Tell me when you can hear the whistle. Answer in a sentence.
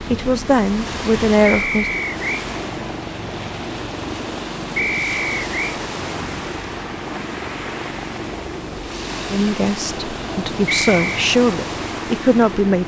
You can hear the whistle from 1.4 to 2.5 s, from 4.8 to 5.8 s and from 10.7 to 11.2 s.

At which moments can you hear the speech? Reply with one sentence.
The speech can be heard from 0.0 to 1.9 s and from 9.3 to 12.8 s.